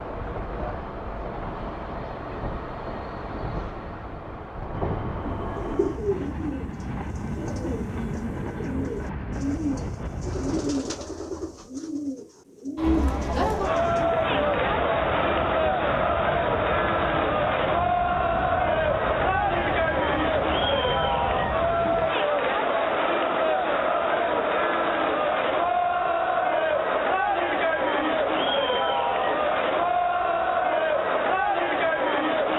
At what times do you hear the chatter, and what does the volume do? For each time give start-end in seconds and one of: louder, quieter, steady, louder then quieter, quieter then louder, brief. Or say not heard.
12.8-32.5 steady.